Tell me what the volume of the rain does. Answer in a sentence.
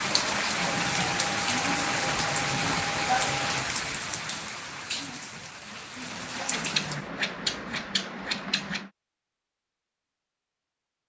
The loudness of the rain goes down.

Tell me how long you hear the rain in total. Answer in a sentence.
The rain can be heard for 7 seconds in total.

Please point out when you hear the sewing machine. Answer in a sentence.
You can hear the sewing machine from 0.1 to 3.5 s.